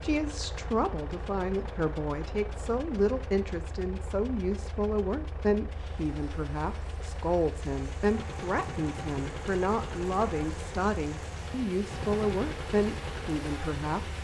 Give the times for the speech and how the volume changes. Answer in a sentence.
You can hear the speech from 0.0 to 14.1 s, at a steady volume.